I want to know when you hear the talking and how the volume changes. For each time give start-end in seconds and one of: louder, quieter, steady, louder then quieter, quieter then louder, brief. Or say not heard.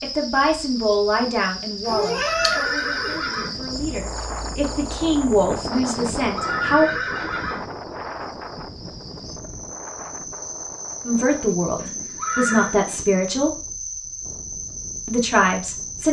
0.0-6.9 quieter then louder
11.1-13.6 brief
15.1-16.0 brief.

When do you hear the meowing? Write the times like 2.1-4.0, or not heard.
1.9-3.2.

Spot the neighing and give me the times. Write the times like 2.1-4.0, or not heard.
1.9-3.5, 6.0-7.7, 11.8-12.8.